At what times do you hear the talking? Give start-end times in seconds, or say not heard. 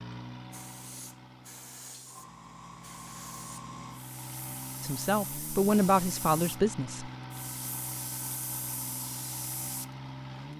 4.8-7.1.